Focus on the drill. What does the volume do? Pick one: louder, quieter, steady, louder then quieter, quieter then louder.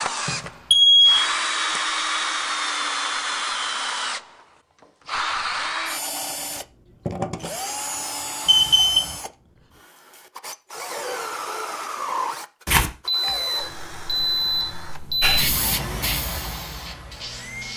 quieter.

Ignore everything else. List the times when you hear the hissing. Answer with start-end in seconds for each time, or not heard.
15.2-17.7.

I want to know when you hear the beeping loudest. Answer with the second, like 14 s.
1 s.